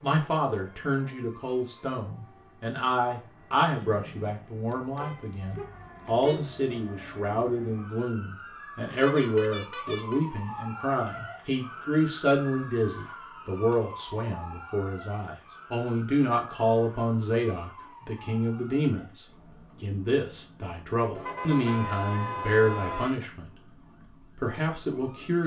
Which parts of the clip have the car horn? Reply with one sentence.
You can hear the car horn from 3.8 to 6.5 s, from 8.8 to 10.2 s and from 21.1 to 23.1 s.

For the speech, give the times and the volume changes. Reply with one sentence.
You can hear the speech from 0.0 to 25.4 s, at a steady volume.